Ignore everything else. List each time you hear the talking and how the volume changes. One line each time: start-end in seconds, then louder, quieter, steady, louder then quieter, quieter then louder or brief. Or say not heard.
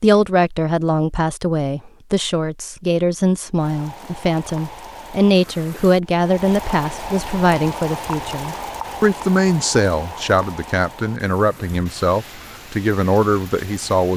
0.0-14.1 steady.